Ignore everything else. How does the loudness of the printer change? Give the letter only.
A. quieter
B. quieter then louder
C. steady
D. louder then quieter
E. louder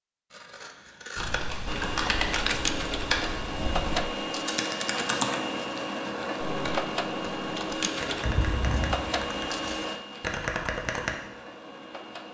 A.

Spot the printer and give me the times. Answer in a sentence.
The printer can be heard from 1.6 to 12.2 s.